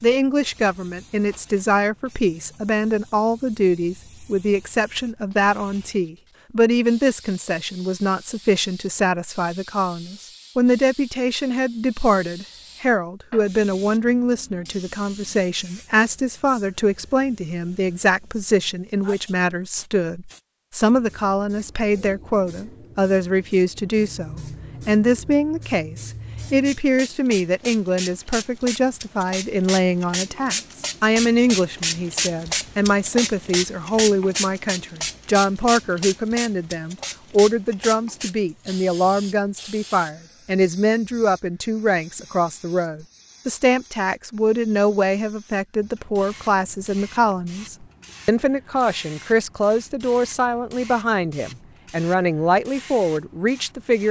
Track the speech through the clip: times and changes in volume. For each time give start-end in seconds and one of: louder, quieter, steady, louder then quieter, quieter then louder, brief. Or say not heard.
0.0-54.0 steady.